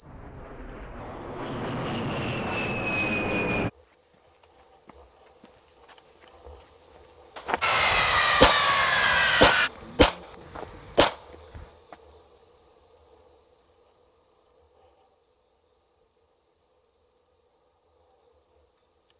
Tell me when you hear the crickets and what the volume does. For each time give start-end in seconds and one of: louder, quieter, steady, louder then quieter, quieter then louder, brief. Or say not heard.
0.0-19.1 louder then quieter.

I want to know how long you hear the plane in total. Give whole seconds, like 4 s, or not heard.
6 s.